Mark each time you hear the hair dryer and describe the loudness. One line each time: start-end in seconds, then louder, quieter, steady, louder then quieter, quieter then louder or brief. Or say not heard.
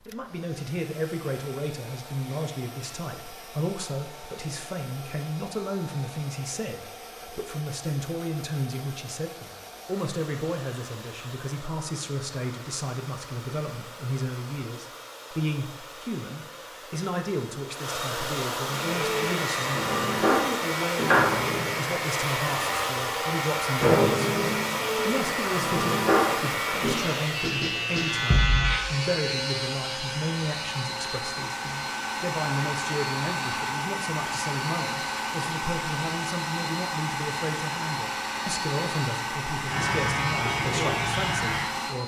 0.0-42.0 louder.